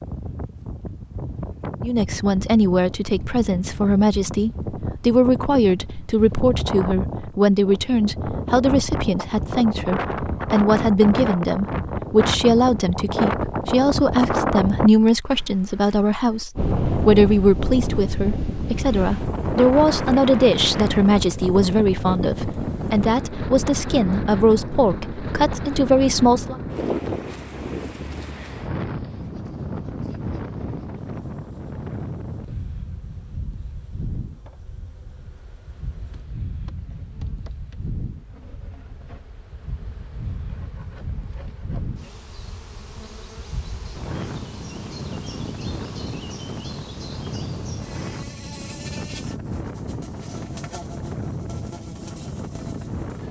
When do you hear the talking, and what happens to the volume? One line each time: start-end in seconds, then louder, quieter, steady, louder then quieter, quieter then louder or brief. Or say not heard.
1.8-26.6 steady.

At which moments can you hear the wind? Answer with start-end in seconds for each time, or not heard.
0.0-53.2.